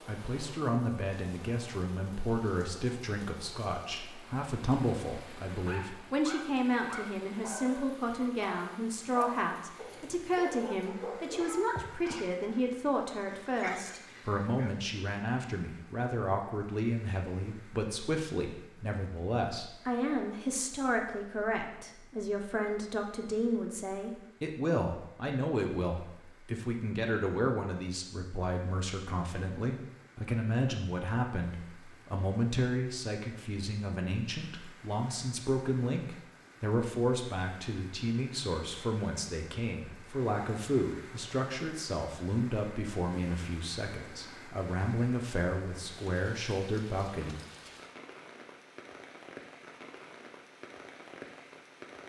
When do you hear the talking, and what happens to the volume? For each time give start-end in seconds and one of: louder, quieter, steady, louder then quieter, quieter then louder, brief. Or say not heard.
0.1-47.4 steady.